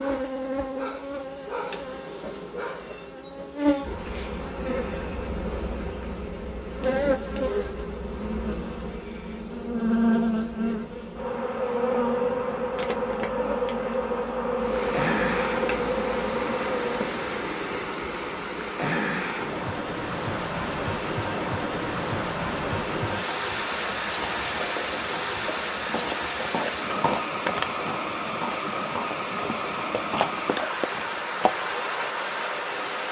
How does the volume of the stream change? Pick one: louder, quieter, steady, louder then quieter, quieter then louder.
steady.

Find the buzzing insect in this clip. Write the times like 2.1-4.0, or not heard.
0.0-17.1.